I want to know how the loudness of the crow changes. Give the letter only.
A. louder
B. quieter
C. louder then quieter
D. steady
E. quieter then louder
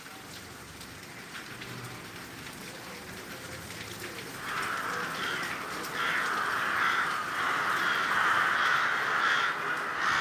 A.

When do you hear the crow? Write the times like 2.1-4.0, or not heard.
4.3-10.1.